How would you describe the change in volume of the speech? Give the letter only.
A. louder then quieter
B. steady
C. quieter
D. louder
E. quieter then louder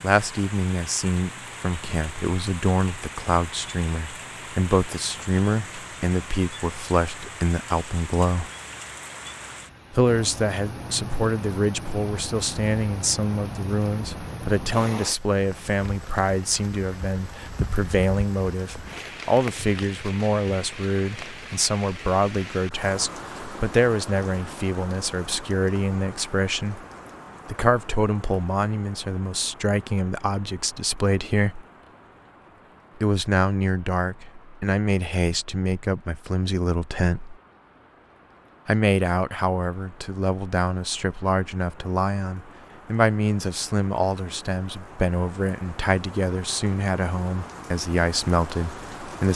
B.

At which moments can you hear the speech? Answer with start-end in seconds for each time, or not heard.
0.0-8.5, 9.9-26.8, 27.4-31.6, 33.0-37.4, 38.6-49.3.